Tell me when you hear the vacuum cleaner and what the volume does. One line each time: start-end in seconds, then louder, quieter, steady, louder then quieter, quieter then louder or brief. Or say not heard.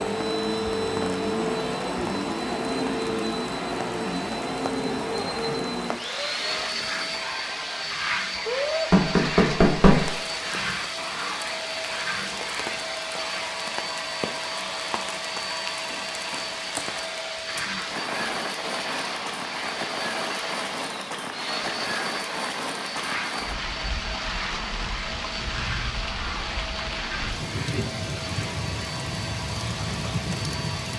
0.0-30.9 quieter.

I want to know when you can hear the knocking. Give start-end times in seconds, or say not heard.
8.9-10.0.